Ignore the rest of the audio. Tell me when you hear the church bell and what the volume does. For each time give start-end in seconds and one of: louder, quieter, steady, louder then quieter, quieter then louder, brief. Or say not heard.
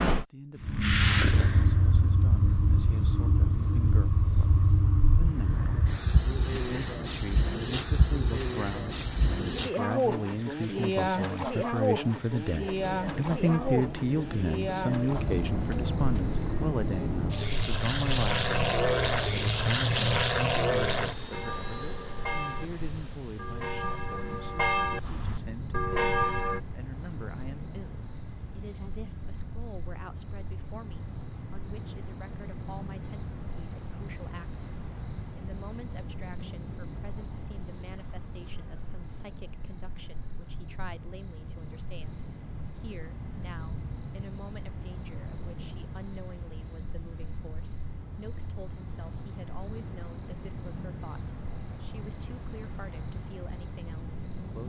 21.3-26.6 quieter then louder.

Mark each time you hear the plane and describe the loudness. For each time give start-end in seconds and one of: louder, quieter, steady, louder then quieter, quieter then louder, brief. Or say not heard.
12.7-25.4 louder then quieter.